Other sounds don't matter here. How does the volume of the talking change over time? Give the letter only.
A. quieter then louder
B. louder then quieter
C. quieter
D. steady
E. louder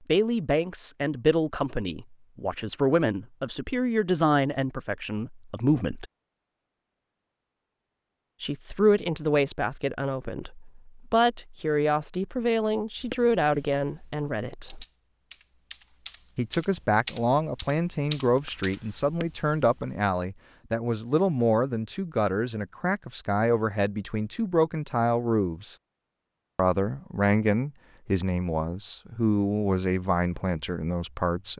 D.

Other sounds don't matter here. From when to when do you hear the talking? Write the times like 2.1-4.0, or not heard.
0.1-6.0, 8.4-14.8, 16.4-25.8, 26.6-31.5.